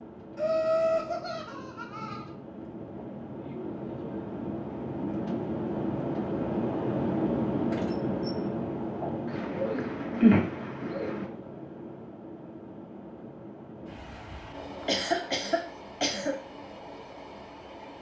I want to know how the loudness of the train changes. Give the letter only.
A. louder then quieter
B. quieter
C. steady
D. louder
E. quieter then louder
A.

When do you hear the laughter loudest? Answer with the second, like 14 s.
10 s.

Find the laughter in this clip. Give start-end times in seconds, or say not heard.
0.3-2.3, 9.8-10.4, 14.8-16.4.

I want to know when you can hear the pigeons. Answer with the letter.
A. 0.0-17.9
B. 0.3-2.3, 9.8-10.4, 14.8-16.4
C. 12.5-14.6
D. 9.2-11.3
D.